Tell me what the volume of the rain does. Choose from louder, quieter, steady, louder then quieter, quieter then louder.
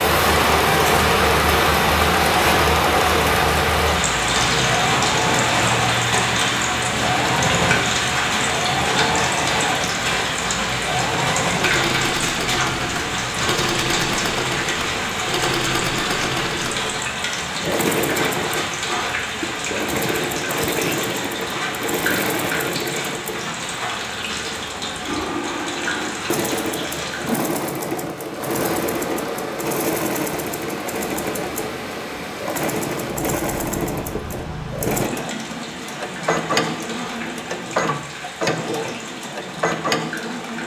quieter.